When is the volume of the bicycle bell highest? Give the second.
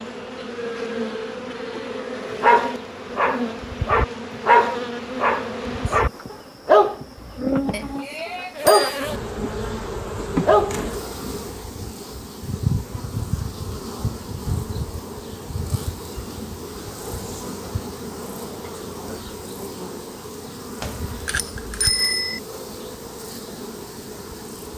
22 s.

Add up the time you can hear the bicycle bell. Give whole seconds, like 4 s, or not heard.
3 s.